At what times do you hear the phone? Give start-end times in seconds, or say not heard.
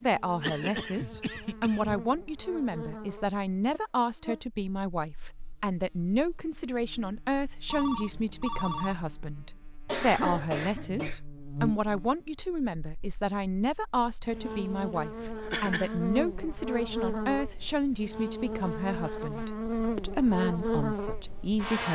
7.7-9.4.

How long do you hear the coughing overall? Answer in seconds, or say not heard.
4 s.